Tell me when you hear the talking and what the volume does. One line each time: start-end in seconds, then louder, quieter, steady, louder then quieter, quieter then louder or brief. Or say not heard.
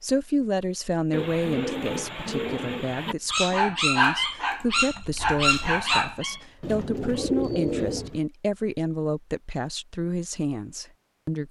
0.0-11.4 steady.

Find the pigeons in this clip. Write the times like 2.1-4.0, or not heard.
1.1-3.1, 6.6-8.2.